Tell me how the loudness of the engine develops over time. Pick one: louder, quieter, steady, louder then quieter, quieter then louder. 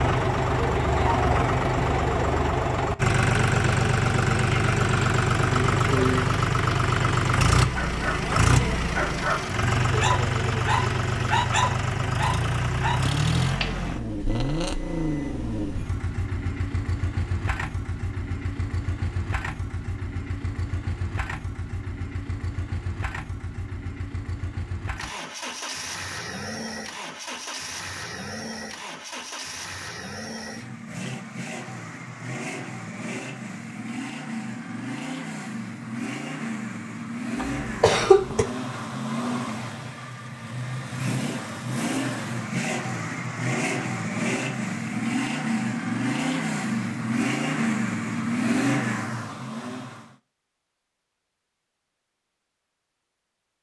quieter then louder.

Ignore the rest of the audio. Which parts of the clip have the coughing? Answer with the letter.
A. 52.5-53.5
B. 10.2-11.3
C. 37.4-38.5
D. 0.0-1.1
C.